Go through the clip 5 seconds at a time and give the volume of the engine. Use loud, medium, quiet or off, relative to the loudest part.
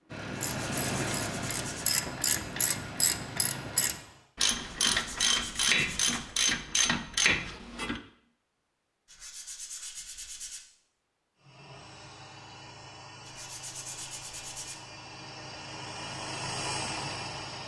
loud, off, medium, loud.